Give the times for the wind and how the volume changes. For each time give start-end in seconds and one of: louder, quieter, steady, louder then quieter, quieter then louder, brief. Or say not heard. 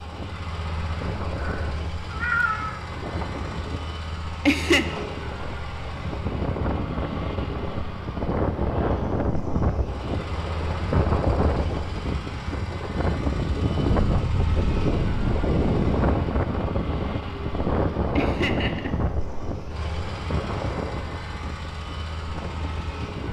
0.0-23.2 louder then quieter.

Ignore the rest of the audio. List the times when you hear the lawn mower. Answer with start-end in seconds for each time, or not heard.
0.0-23.2.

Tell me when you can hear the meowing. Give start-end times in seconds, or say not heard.
1.4-2.9.